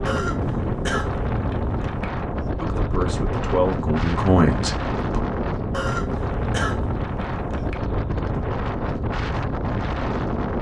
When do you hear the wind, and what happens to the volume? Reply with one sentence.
You can hear the wind from 0.0 to 10.5 s, at a steady volume.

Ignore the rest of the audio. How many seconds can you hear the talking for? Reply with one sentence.
The talking can be heard for 3 seconds in total.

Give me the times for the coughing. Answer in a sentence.
The coughing can be heard from 0.1 to 2.0 s and from 5.7 to 7.8 s.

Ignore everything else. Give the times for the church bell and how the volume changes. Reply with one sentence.
The church bell can't be heard in this clip.